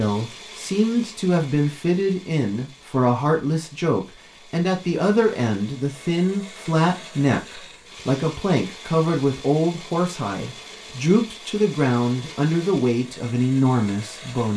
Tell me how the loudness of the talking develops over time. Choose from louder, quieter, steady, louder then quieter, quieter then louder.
steady.